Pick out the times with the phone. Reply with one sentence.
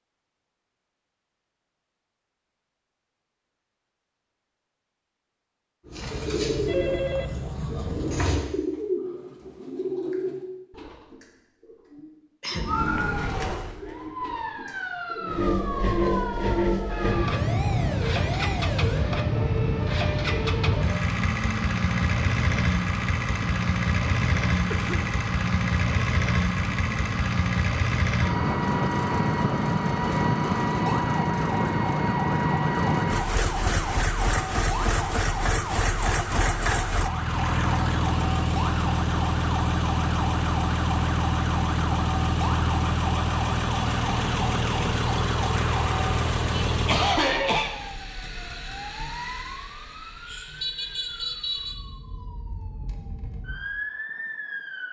You can hear the phone from 6.7 to 7.3 s.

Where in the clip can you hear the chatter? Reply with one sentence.
The chatter can't be heard in this clip.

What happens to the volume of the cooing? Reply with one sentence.
The loudness of the cooing goes down.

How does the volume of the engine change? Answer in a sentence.
The loudness of the engine stays about the same.